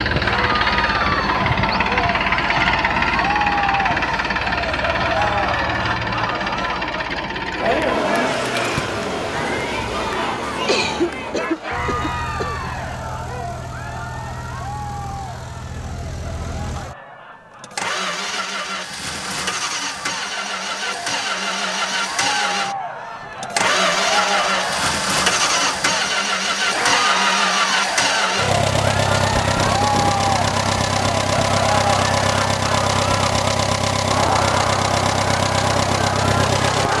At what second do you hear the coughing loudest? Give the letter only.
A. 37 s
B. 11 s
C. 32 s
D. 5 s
B.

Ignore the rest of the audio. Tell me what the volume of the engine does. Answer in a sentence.
The loudness of the engine goes down, then up.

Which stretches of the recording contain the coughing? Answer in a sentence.
The coughing can be heard from 10.7 to 12.7 s.